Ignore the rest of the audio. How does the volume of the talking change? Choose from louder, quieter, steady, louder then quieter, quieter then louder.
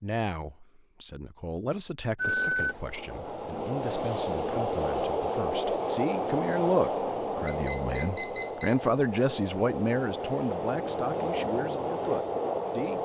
louder then quieter.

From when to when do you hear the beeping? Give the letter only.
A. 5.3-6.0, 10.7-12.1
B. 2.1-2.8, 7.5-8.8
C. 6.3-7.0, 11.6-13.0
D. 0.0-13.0
B.